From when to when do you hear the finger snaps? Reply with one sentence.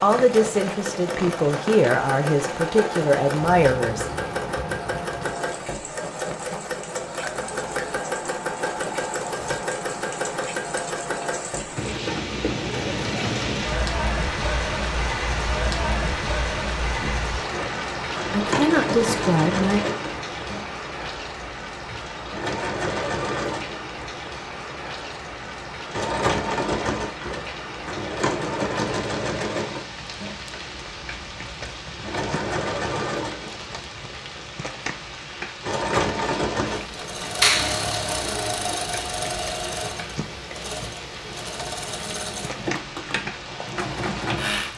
You can hear the finger snaps from 7.2 to 8.0 s and from 37.4 to 37.9 s.